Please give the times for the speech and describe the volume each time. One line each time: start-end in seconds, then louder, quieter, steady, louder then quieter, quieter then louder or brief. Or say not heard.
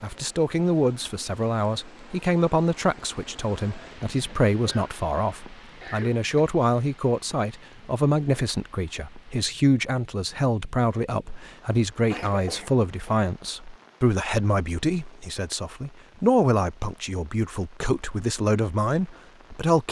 0.0-19.8 steady.